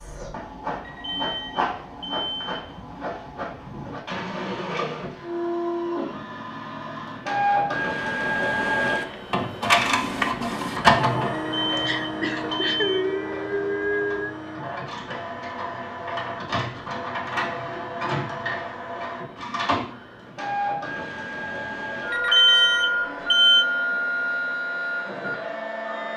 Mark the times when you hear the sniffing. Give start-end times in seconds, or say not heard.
11.8-14.3.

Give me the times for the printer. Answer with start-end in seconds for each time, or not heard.
0.0-26.1.